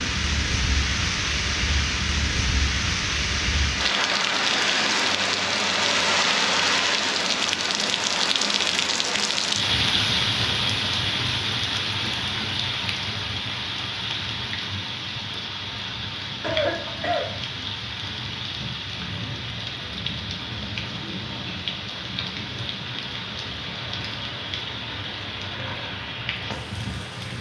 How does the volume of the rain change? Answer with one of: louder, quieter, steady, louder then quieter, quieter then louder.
quieter.